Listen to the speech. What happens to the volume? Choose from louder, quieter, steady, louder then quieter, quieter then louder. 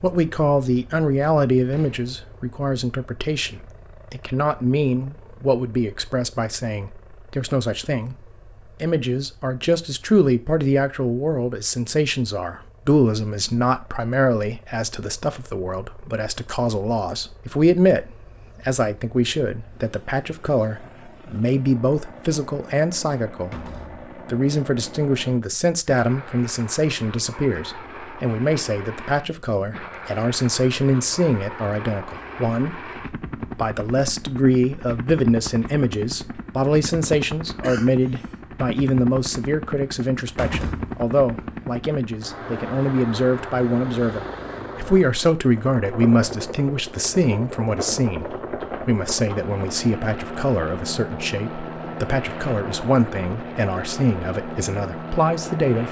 steady.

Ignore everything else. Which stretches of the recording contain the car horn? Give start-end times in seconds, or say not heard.
not heard.